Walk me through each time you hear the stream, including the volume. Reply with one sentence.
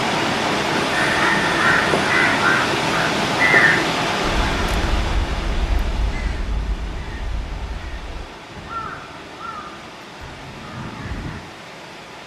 The stream can be heard from 0.0 to 12.2 s, getting quieter.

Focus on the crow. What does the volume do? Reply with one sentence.
The volume of the crow goes down.